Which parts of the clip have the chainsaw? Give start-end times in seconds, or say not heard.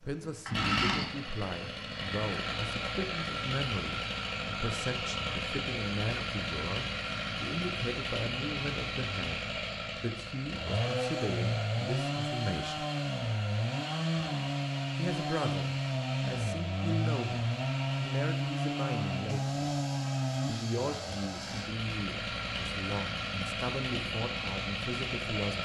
0.0-25.6.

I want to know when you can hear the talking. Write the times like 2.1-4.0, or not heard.
0.0-12.8, 14.9-19.8, 20.4-25.6.